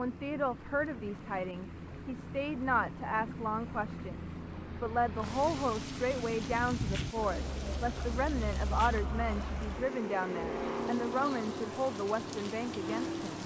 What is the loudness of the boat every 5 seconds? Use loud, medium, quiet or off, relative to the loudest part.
medium, loud, loud.